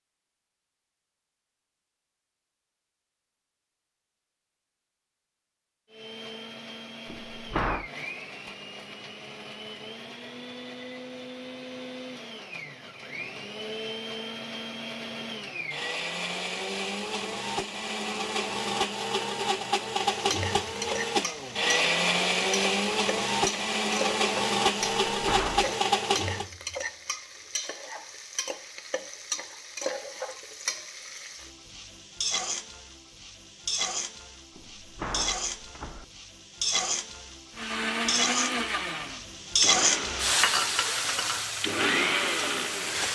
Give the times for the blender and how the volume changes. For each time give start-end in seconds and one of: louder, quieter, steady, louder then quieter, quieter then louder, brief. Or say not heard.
5.9-26.4 louder
37.5-43.1 quieter then louder.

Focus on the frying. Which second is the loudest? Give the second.
40 s.